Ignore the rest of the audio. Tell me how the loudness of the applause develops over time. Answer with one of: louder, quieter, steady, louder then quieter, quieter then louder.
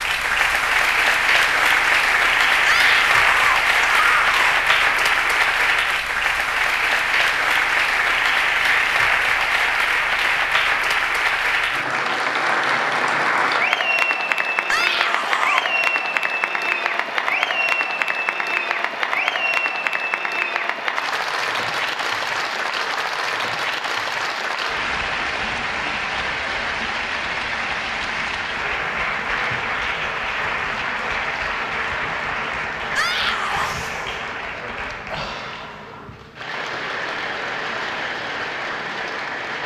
quieter.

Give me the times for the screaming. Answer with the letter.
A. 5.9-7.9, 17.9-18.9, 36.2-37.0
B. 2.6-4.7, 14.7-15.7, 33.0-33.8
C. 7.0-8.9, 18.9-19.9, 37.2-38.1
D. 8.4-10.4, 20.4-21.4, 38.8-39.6
B.